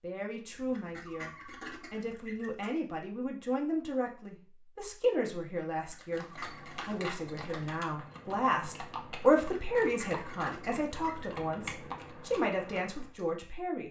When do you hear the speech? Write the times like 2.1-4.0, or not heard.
0.0-6.2, 6.8-13.8.